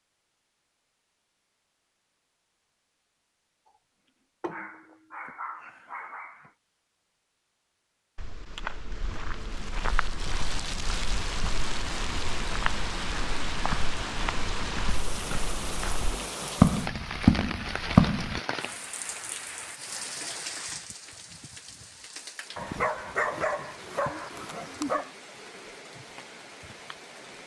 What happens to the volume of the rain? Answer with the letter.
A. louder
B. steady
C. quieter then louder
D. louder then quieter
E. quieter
E.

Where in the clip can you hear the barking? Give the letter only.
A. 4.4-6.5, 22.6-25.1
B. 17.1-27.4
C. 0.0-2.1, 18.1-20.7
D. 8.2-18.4
A.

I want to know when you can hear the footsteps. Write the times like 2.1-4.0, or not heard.
8.2-18.4.